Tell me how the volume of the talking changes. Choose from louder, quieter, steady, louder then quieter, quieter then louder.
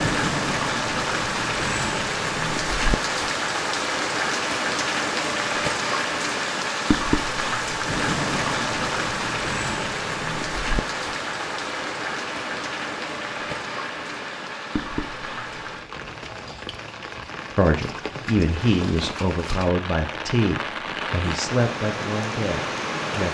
quieter.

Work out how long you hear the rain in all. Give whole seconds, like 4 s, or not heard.
23 s.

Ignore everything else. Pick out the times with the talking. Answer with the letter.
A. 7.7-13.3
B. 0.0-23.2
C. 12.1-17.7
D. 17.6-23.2
D.